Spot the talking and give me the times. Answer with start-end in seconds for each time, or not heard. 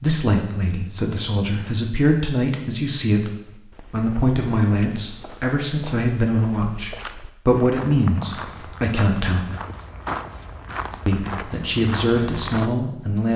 0.0-9.4, 11.1-13.3.